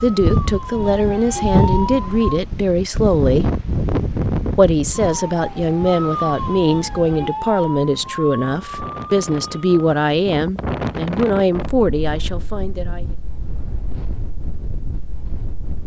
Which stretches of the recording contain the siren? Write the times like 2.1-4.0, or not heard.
0.0-2.4, 5.0-9.8.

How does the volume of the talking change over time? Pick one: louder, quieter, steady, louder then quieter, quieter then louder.
steady.